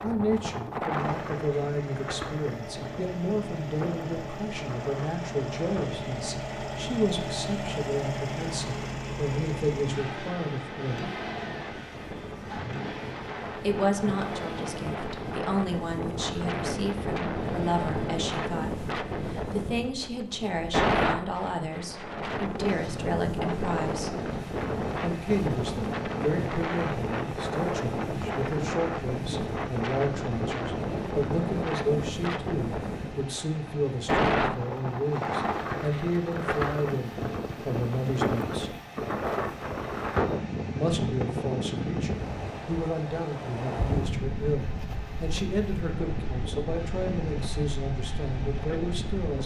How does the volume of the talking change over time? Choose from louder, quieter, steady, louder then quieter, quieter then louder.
steady.